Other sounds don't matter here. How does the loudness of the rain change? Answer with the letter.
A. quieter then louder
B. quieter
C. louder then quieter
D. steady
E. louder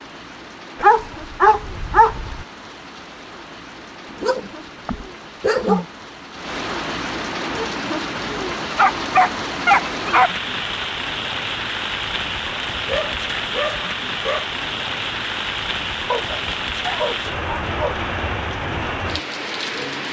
E.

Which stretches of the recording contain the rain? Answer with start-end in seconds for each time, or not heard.
0.0-20.0.